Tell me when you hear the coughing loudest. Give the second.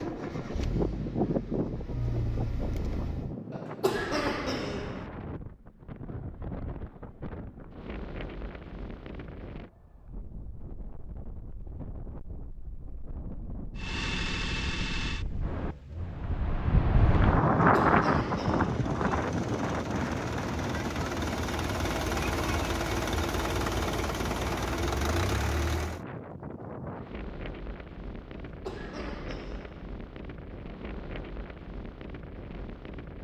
4 s.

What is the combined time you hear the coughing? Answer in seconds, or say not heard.
4 s.